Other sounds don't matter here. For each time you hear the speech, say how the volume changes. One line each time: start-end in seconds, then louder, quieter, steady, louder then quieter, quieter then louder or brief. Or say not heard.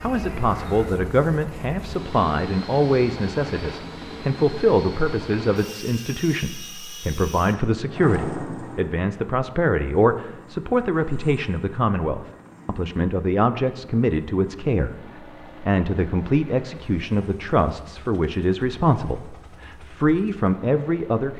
0.0-21.3 steady.